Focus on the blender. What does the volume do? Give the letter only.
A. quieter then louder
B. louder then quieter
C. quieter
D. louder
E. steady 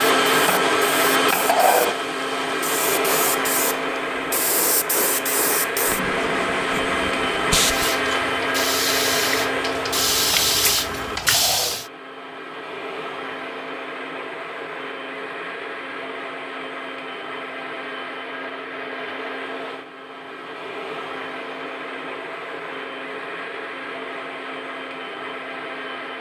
C.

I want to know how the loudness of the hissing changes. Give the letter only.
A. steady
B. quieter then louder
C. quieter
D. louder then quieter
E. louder
E.